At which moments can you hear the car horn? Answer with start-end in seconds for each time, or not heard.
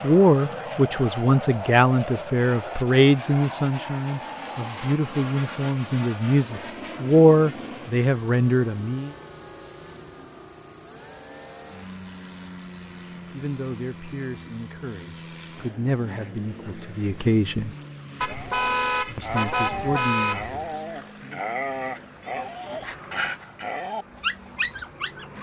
18.2-20.7.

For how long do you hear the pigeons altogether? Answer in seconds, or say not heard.
not heard.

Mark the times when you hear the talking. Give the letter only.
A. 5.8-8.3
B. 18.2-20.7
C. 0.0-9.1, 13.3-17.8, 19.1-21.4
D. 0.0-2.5
C.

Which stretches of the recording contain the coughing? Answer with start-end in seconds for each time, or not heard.
not heard.